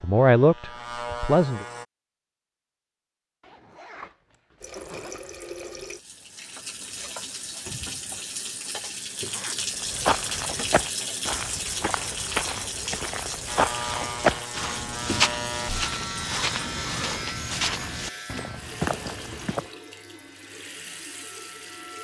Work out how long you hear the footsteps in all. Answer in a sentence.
The footsteps can be heard for 10 seconds in total.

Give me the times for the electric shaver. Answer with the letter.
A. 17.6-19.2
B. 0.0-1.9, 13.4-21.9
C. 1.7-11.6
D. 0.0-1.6
B.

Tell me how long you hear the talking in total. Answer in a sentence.
The talking can be heard for 2 seconds in total.